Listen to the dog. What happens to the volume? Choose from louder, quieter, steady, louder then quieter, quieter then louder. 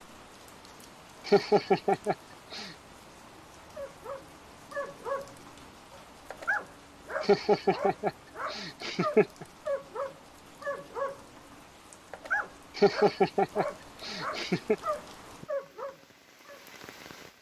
steady.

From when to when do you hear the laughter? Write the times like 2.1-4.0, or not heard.
1.2-2.7, 7.2-9.4, 12.8-14.8.